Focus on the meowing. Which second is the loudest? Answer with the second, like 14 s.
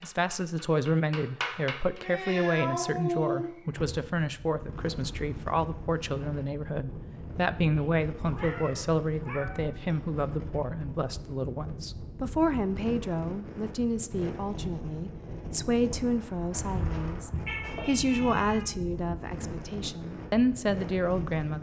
3 s.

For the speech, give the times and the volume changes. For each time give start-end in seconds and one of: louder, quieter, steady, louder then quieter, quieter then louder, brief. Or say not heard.
0.0-21.5 steady.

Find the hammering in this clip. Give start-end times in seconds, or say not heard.
0.0-2.0.